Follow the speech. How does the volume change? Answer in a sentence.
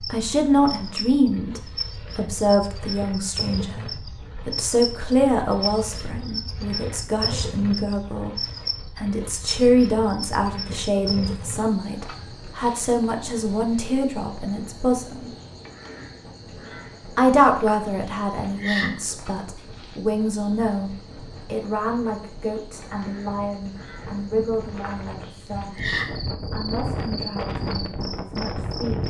The loudness of the speech goes down.